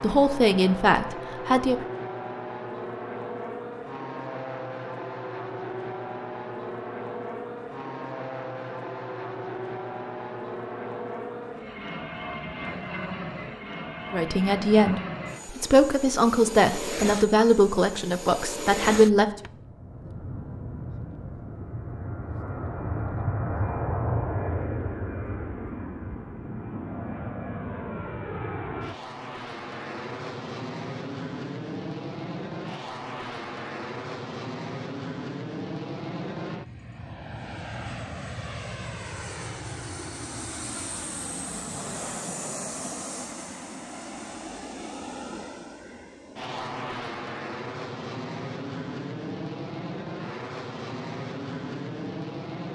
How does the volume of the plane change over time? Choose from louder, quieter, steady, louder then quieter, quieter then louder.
steady.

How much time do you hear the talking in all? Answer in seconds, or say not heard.
7 s.